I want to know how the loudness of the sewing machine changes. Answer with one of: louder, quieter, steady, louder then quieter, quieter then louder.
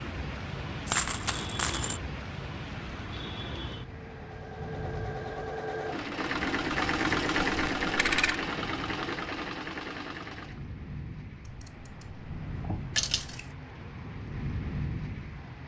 louder then quieter.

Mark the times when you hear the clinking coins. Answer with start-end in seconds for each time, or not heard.
0.8-2.0, 7.5-8.4, 12.9-13.4.